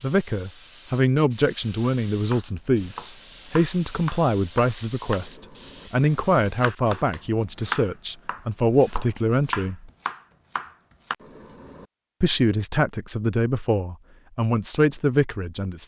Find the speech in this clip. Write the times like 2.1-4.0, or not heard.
0.0-9.9, 12.2-15.8.